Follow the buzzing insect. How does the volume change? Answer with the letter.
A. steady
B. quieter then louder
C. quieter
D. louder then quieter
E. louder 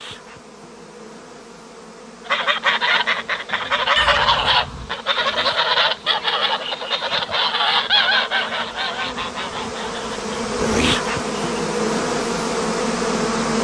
E.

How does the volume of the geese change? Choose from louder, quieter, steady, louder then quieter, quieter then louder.
quieter.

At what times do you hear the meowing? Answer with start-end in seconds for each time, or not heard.
3.5-4.9.